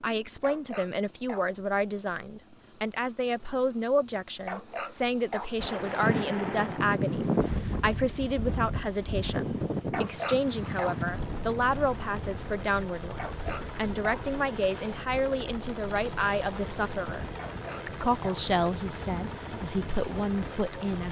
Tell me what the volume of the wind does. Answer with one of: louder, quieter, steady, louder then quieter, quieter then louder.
quieter.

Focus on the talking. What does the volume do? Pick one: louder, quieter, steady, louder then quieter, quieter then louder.
steady.